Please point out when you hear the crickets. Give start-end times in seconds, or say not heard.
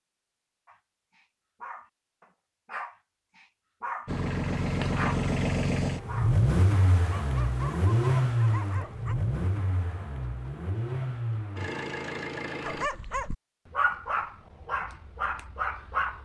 not heard.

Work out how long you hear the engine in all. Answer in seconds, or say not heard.
9 s.